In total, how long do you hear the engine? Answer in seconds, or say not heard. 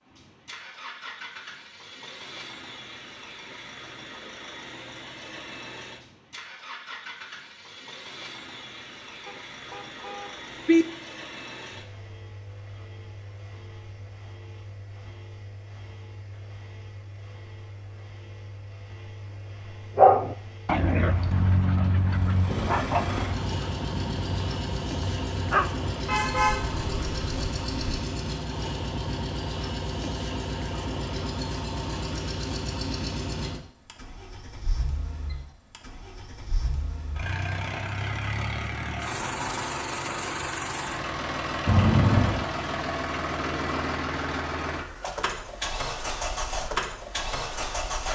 48 s.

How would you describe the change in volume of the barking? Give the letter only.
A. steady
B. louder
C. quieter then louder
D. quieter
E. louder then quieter
D.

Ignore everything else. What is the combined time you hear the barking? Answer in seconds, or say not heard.
6 s.